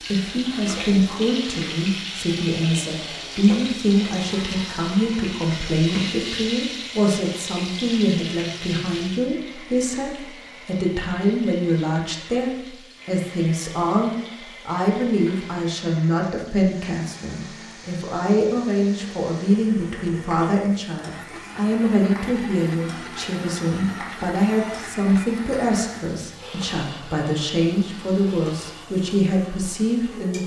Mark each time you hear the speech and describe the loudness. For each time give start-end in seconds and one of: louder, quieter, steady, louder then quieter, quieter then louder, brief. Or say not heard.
0.0-30.4 steady.